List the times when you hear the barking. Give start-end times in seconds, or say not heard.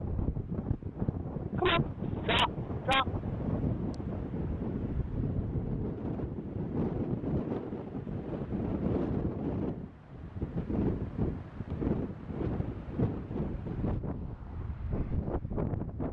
1.6-3.0.